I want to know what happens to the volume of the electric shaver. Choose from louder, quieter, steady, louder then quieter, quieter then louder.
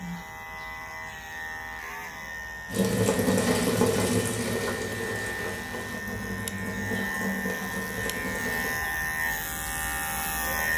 louder.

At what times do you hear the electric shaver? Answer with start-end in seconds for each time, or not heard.
0.0-10.7.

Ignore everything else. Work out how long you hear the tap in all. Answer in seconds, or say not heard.
6 s.